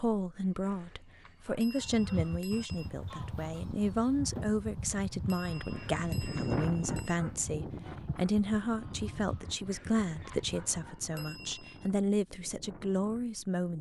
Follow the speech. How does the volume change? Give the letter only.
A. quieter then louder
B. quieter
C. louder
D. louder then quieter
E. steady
E.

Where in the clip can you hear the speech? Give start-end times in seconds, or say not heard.
0.0-13.7.